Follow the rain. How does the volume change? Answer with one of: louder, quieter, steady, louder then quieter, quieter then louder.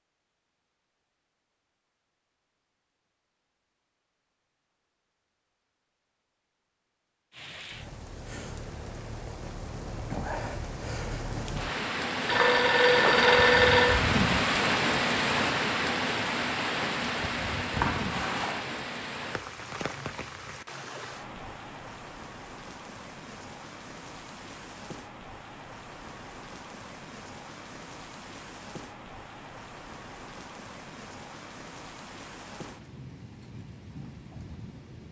louder then quieter.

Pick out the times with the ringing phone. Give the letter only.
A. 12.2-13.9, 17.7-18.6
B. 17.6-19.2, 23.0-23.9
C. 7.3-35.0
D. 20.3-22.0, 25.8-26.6
A.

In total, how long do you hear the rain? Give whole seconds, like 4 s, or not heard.
28 s.